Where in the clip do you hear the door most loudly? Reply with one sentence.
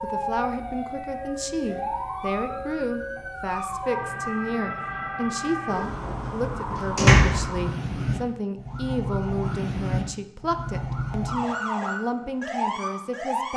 The volume of the door peaks at 7 seconds.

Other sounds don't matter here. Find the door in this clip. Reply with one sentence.
The door can be heard from 5.7 to 7.5 s.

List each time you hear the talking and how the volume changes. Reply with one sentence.
You can hear the talking from 0.0 to 13.5 s, at a steady volume.